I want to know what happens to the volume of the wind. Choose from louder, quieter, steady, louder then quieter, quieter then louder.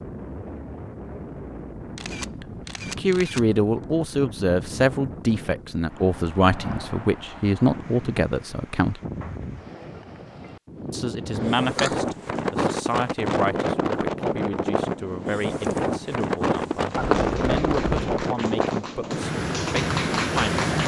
louder.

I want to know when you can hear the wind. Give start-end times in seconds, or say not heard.
0.0-20.8.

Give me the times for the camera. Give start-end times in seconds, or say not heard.
1.9-3.4, 11.3-12.0, 16.9-18.2.